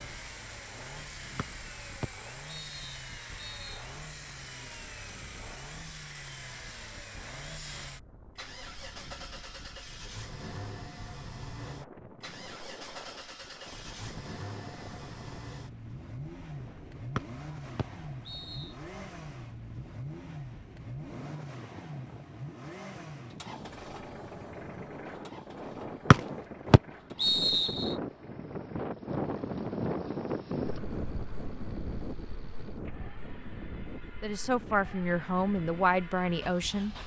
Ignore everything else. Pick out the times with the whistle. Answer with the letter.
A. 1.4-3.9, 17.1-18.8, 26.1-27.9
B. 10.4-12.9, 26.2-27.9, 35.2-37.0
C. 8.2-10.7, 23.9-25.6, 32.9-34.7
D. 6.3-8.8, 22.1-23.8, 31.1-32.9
A.